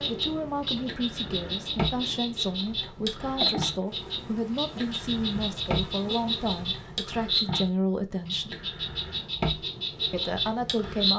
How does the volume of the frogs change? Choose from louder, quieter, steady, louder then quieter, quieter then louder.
steady.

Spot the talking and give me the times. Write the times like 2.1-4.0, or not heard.
0.0-8.6, 10.1-11.1.